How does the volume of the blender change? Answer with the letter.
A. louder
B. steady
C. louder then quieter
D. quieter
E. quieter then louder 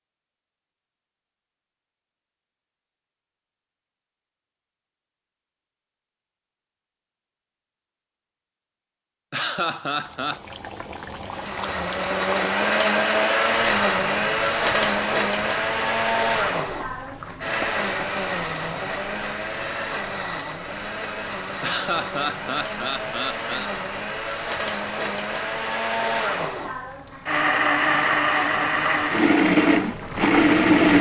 E.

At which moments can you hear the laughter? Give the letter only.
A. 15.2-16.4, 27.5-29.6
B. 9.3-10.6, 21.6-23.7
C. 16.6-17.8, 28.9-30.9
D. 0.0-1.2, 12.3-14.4
B.